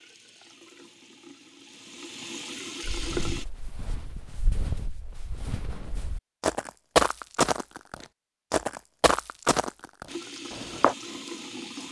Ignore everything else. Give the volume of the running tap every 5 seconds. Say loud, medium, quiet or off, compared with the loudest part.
loud, off, loud.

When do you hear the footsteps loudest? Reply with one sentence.
The loudest moment of the footsteps is at 7 seconds.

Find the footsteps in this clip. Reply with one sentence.
The footsteps can be heard from 2.8 to 10.9 s.